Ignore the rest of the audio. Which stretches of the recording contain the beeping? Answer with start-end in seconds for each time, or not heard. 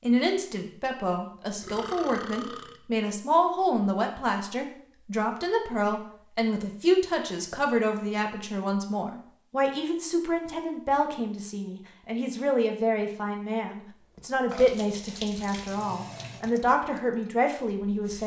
not heard.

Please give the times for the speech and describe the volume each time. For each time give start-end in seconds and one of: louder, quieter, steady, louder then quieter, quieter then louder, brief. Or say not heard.
0.0-18.2 steady.